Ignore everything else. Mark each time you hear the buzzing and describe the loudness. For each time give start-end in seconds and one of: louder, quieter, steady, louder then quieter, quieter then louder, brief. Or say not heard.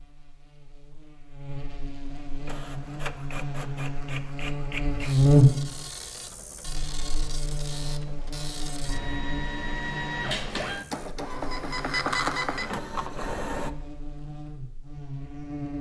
0.0-15.7 louder then quieter.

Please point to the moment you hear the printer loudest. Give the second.
12 s.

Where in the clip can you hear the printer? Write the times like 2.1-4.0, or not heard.
2.4-13.7.